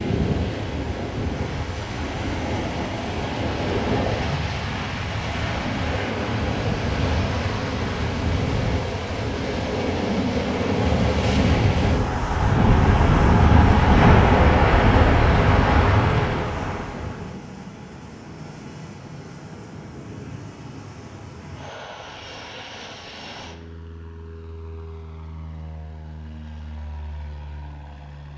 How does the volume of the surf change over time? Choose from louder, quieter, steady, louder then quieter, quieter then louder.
louder.